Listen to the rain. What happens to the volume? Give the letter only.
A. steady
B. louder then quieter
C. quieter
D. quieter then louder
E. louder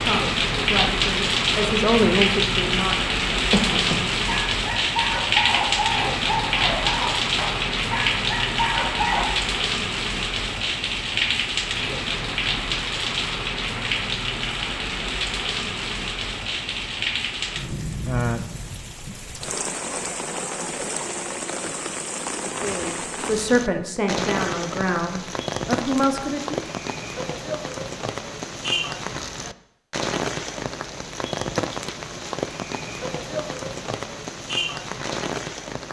C.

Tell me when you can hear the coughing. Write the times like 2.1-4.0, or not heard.
3.5-4.0.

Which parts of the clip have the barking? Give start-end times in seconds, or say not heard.
4.2-9.2.